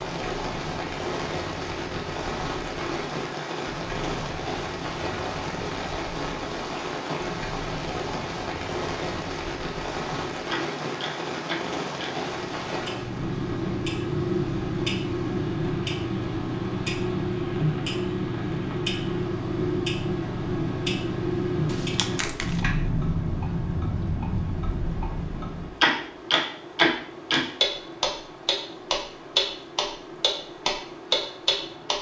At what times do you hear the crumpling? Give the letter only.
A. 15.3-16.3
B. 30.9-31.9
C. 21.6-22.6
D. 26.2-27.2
C.